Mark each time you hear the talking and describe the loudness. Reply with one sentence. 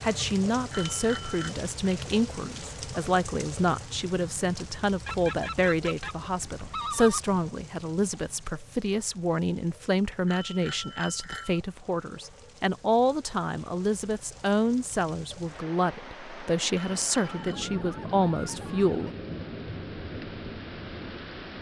The talking can be heard from 0.0 to 19.1 s, at a steady volume.